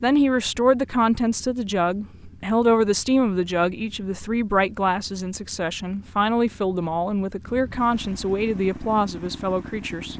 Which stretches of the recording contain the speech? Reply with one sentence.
The speech can be heard from 0.0 to 10.1 s.